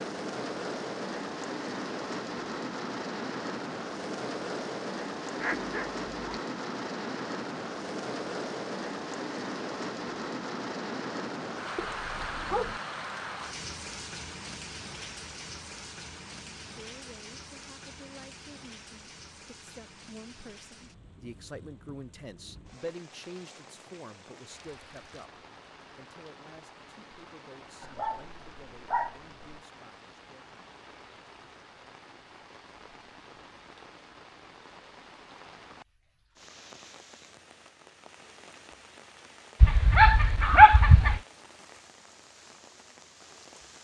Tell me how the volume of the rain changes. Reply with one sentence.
The loudness of the rain goes down.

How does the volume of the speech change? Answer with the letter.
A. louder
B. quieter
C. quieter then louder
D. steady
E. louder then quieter
E.